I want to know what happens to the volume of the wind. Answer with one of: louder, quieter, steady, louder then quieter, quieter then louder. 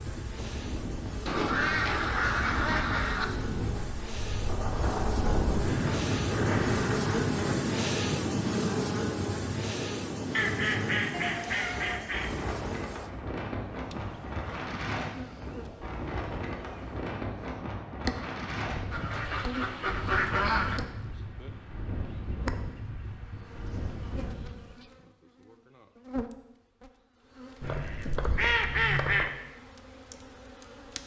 louder then quieter.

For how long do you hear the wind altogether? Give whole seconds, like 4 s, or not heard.
25 s.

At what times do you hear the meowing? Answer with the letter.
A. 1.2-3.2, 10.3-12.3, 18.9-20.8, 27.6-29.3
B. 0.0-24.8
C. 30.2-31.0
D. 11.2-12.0
D.